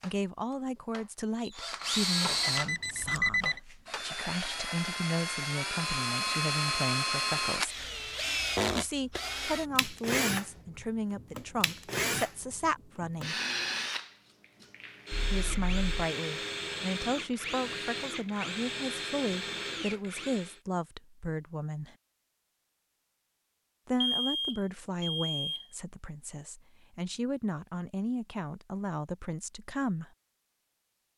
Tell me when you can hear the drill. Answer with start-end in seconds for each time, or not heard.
0.0-20.6.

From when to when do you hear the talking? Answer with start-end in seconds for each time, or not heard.
0.0-7.8, 8.8-13.3, 15.3-21.9, 23.9-30.1.